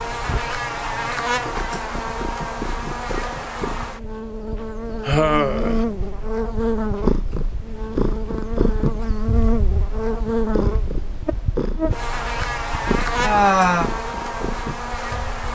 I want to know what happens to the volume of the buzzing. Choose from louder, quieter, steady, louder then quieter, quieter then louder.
steady.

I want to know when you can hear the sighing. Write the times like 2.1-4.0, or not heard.
5.0-5.8, 13.2-13.9.